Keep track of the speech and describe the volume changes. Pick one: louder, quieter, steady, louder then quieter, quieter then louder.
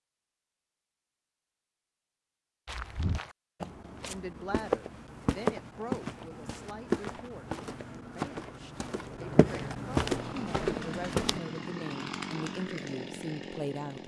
quieter then louder.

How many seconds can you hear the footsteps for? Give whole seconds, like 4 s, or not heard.
9 s.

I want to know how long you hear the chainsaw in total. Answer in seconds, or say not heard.
4 s.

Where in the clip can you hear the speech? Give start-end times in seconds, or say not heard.
4.0-14.0.